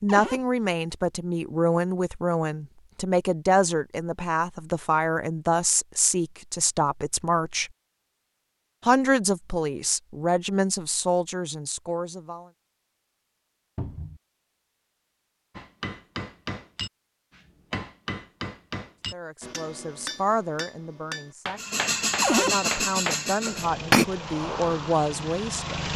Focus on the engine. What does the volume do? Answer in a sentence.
The loudness of the engine goes down.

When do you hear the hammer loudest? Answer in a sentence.
The loudest moment of the hammer is at 24 seconds.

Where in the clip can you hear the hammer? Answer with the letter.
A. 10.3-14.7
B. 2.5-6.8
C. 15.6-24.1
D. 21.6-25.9
C.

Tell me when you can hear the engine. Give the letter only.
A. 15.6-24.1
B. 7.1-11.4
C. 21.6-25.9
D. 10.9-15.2
C.